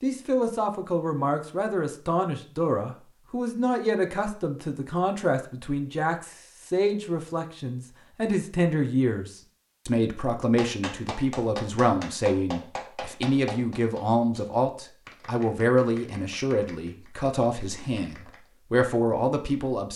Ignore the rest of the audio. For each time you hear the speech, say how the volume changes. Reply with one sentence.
The speech can be heard from 0.0 to 19.9 s, at a steady volume.